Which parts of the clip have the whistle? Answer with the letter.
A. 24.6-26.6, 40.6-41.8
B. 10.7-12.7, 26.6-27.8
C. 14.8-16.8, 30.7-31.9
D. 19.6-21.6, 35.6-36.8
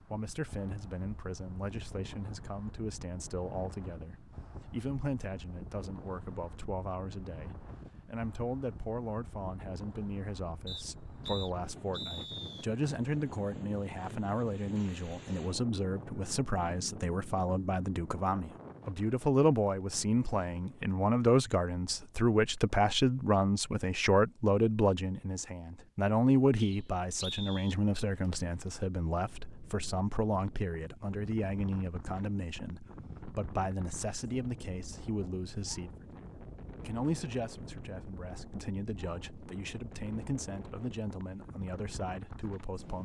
B.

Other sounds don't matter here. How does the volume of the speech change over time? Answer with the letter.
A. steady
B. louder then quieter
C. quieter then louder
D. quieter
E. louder
B.